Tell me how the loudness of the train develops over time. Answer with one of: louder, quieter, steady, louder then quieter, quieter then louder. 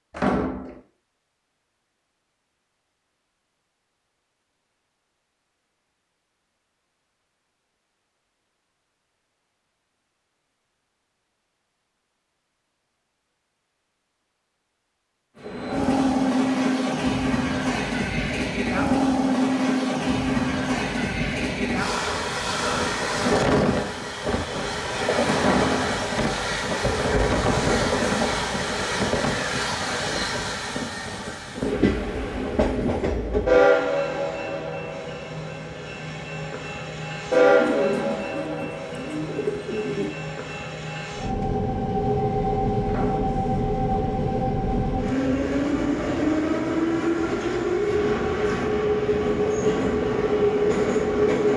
steady.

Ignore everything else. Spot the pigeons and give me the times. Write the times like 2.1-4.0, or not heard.
37.4-40.1.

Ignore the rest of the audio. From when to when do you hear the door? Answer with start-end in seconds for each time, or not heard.
0.1-0.8, 25.4-25.9, 42.9-43.4.